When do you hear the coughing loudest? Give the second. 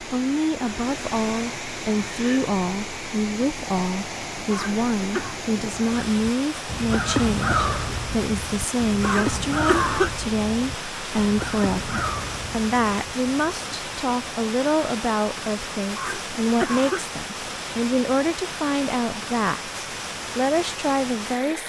10 s.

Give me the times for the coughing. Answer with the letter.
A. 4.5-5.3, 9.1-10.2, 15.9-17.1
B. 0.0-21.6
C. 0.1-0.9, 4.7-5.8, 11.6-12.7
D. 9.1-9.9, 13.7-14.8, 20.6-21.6
A.